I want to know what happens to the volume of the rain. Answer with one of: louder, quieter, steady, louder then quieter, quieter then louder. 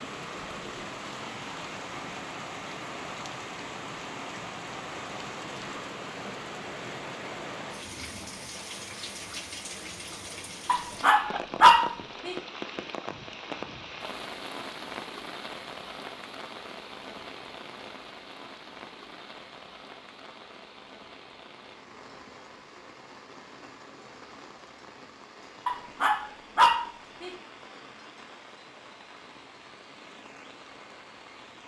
quieter.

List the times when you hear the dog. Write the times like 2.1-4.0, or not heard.
10.7-12.3, 25.6-27.3.